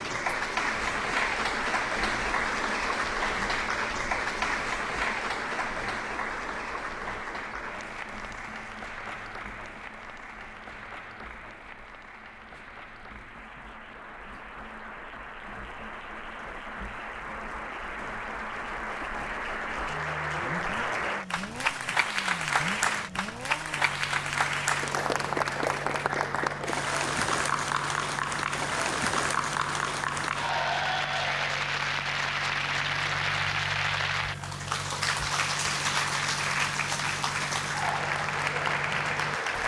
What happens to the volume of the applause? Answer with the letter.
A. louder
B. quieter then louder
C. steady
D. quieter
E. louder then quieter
B.